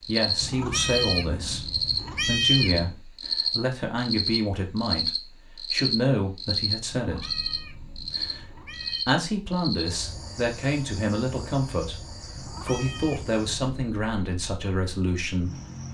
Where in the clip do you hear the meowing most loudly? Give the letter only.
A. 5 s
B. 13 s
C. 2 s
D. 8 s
C.